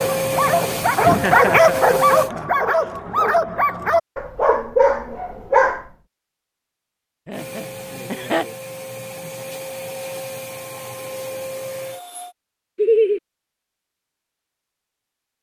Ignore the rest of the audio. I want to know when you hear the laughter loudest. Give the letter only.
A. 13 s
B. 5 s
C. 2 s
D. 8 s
A.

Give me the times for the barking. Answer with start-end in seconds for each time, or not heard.
0.0-5.8.